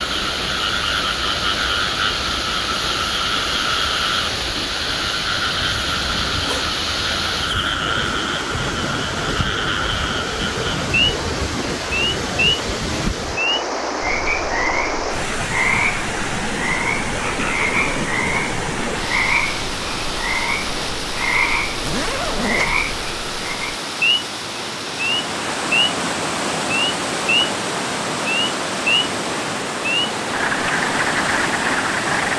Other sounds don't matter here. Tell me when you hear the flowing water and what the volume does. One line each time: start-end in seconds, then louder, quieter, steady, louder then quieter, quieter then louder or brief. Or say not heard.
0.0-32.3 steady.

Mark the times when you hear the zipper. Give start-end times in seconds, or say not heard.
5.8-6.7, 21.8-22.8.